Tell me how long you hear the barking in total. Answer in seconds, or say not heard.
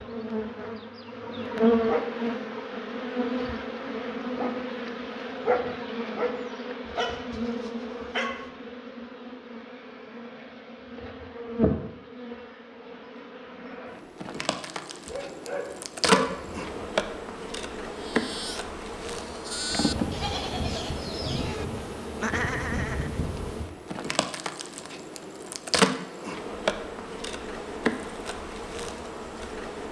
3 s.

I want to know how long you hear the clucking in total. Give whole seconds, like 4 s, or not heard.
not heard.